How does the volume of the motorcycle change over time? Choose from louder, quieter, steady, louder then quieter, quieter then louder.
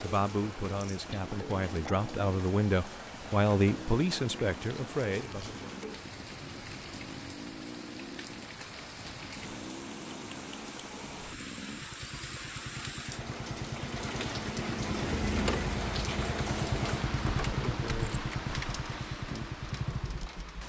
louder.